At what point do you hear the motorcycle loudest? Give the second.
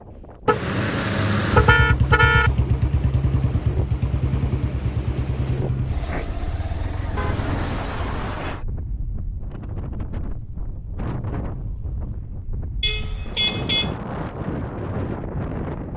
2 s.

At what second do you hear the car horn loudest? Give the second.
2 s.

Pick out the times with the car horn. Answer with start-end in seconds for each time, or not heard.
0.5-2.5, 7.2-8.7, 12.8-13.9.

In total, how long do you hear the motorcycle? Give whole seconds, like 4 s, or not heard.
7 s.